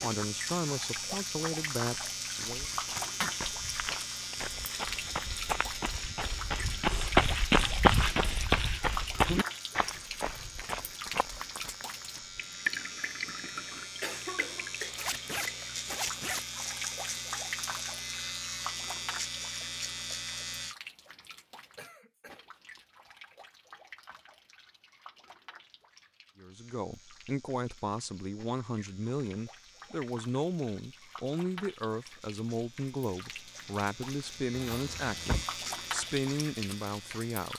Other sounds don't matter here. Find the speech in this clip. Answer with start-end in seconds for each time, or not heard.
0.0-2.6, 26.4-37.5.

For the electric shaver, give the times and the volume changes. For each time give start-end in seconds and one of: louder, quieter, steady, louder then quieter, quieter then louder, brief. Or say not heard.
0.0-20.8 quieter then louder
26.5-37.5 louder.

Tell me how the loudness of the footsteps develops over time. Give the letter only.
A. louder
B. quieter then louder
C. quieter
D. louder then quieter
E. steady
D.